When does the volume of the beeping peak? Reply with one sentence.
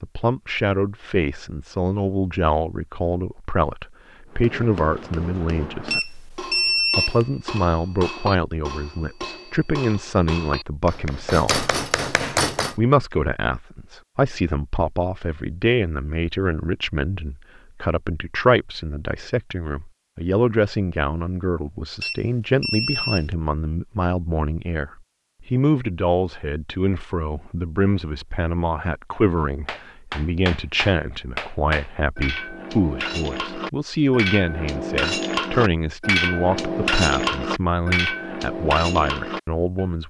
The loudest moment of the beeping is at 7 seconds.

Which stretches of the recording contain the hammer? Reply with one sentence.
You can hear the hammer from 4.3 to 12.8 s and from 29.4 to 39.9 s.